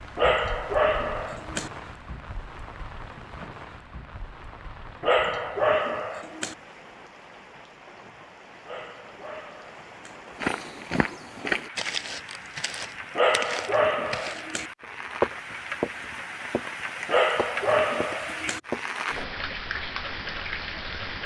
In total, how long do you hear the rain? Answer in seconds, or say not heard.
21 s.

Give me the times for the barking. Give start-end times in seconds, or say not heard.
0.1-1.7, 5.0-6.5, 8.7-10.2, 13.2-14.7, 17.1-18.6.